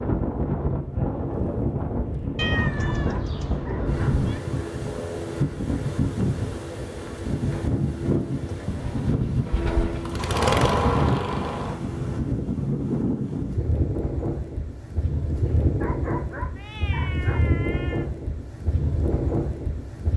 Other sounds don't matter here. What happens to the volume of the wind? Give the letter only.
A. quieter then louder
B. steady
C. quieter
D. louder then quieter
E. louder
B.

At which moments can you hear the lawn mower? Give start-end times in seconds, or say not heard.
8.8-11.8.